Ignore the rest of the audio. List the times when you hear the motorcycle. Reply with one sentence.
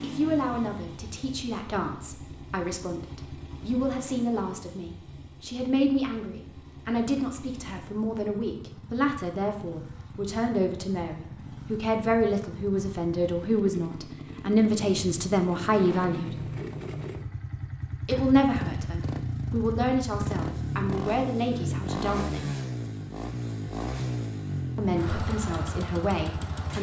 The motorcycle can be heard from 0.0 to 26.7 s.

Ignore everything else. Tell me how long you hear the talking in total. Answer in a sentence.
You can hear the talking for 23 seconds altogether.